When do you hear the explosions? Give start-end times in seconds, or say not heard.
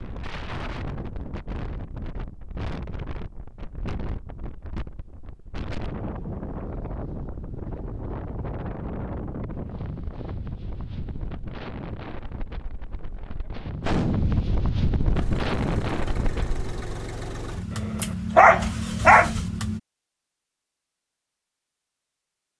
13.8-14.4.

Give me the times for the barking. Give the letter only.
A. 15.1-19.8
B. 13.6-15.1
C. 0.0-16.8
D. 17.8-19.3
D.